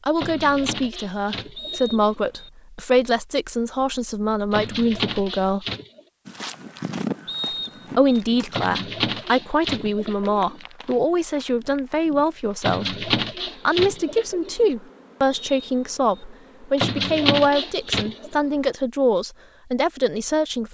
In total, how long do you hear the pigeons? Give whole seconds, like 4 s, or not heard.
9 s.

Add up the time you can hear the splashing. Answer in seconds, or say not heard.
not heard.